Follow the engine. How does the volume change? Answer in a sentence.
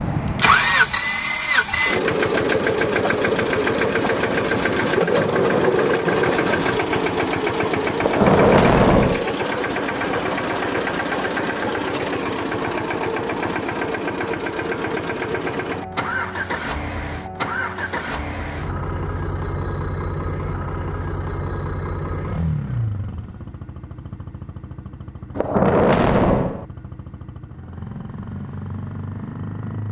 The loudness of the engine goes down.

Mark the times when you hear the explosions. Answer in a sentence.
The explosions can be heard from 8.0 to 9.3 s and from 25.4 to 26.6 s.